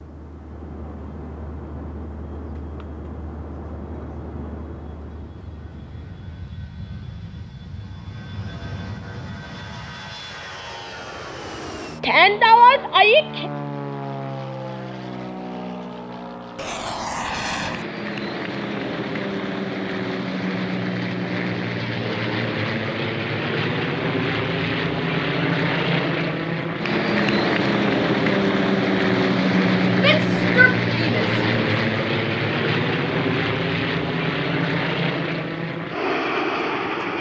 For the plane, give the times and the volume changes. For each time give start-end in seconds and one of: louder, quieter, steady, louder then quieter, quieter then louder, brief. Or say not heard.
0.0-37.1 louder.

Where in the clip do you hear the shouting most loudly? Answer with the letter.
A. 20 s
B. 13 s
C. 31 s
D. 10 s
B.